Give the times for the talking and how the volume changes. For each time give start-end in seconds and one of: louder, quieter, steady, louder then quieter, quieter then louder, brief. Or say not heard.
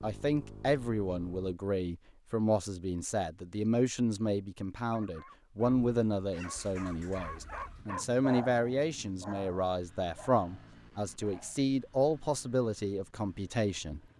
0.0-14.0 steady.